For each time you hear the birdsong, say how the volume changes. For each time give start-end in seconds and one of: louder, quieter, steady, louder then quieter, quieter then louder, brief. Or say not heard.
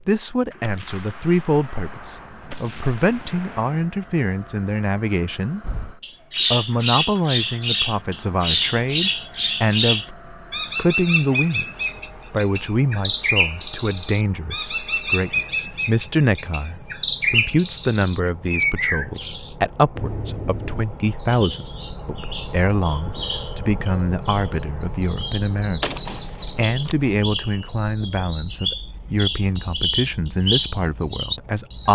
5.6-31.9 quieter then louder.